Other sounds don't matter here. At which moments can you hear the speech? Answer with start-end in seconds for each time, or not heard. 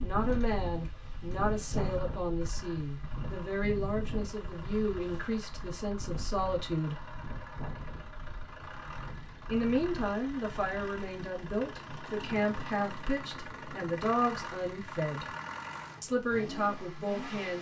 0.0-7.0, 9.4-15.2, 16.0-17.5.